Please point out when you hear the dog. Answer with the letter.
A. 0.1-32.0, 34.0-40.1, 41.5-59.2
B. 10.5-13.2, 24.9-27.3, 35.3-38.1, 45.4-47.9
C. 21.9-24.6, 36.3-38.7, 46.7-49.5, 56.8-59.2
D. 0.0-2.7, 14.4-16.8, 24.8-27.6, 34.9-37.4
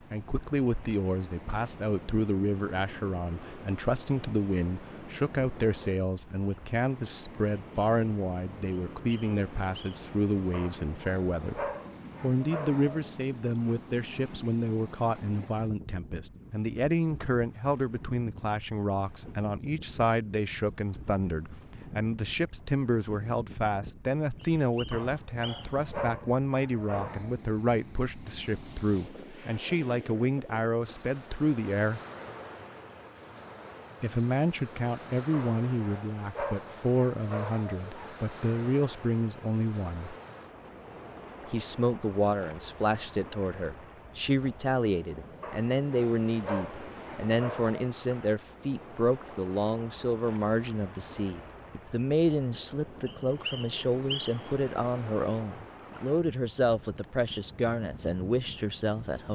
B.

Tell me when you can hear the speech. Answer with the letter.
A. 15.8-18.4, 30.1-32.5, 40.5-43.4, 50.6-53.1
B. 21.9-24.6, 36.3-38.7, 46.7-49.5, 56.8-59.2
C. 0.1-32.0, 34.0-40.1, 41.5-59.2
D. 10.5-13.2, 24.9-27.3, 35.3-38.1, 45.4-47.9
C.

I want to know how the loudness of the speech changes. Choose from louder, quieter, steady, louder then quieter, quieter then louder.
steady.